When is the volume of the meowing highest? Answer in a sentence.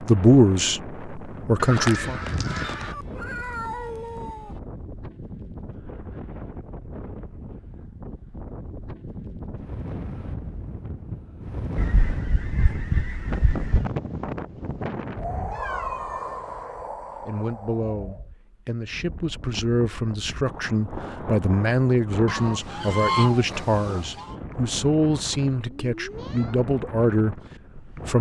The volume of the meowing peaks at 4 seconds.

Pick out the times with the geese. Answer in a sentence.
The geese can be heard from 1.6 to 3.0 s, from 11.8 to 13.8 s and from 22.2 to 24.4 s.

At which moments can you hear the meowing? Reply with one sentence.
You can hear the meowing from 2.6 to 4.6 s, from 15.5 to 16.6 s and from 25.6 to 26.6 s.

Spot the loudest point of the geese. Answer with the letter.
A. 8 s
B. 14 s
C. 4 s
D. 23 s
D.